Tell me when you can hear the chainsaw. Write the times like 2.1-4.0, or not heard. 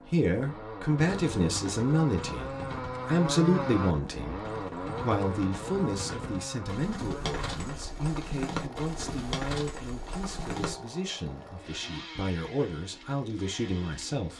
0.0-14.3.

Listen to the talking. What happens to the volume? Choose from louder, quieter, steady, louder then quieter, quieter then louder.
quieter.